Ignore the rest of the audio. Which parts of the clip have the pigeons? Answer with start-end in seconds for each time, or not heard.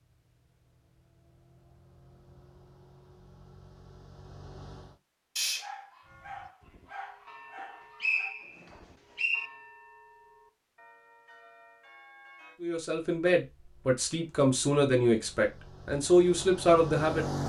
not heard.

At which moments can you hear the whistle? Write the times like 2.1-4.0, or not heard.
8.0-9.5.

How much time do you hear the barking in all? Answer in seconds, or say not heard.
3 s.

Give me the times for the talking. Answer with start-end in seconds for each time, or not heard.
12.6-17.2.